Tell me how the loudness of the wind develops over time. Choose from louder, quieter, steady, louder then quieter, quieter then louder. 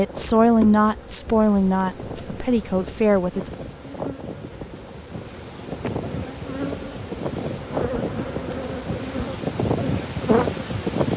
louder.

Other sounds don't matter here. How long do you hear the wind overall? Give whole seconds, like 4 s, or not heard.
11 s.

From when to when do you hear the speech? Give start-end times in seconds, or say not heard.
0.0-3.5.